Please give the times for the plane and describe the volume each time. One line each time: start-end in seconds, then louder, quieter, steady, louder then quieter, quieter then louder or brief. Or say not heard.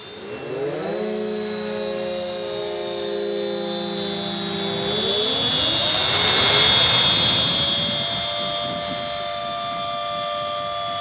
0.0-10.9 louder then quieter.